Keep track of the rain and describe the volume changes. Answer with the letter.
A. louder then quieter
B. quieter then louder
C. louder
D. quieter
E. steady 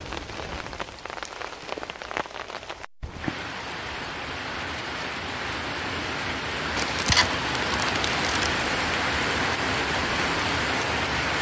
C.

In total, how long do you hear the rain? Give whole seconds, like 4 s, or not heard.
11 s.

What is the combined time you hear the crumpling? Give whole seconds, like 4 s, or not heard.
2 s.